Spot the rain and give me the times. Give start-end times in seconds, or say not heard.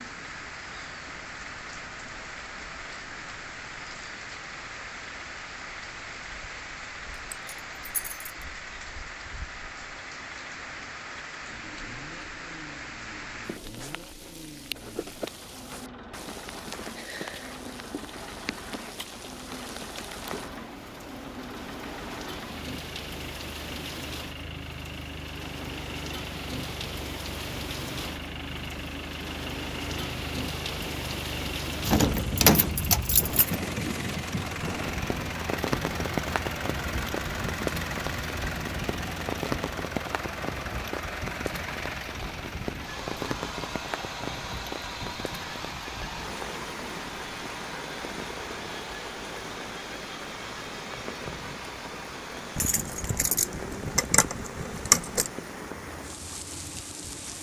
0.0-57.3.